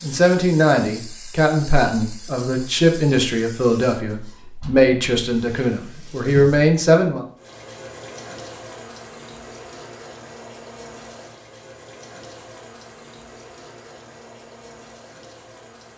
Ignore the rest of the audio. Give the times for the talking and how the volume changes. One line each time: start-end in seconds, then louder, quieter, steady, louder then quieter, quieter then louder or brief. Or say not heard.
0.0-7.2 steady.